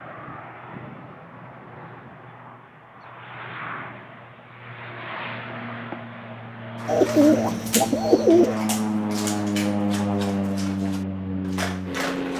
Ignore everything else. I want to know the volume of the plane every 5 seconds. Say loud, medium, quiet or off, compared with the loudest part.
quiet, loud, loud.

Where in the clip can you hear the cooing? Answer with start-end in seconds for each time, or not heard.
6.8-8.6.